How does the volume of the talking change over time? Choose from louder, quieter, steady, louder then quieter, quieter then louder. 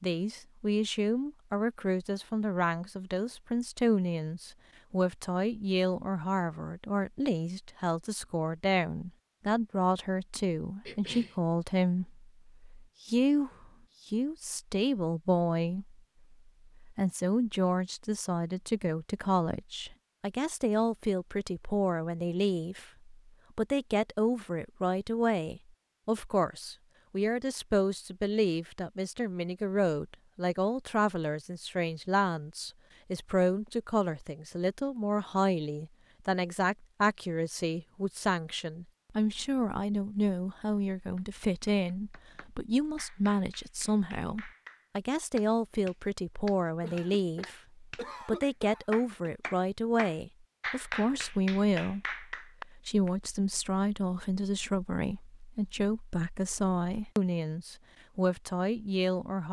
steady.